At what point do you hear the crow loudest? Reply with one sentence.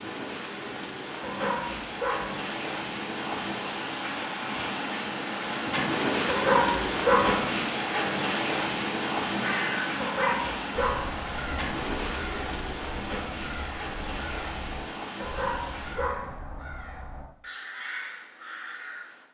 The loudest moment of the crow is at 10 seconds.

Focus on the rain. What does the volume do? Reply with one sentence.
The volume of the rain goes up, then down.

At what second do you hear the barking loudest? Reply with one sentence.
The volume of the barking peaks at 7 seconds.